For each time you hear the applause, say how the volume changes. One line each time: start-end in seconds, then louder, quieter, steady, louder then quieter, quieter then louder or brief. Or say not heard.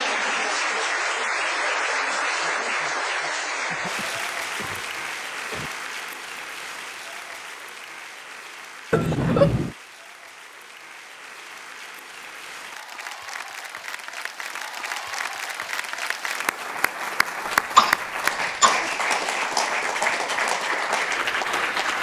0.0-21.9 quieter then louder.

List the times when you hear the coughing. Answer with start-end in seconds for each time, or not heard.
3.6-5.7, 8.9-9.8, 17.4-18.9.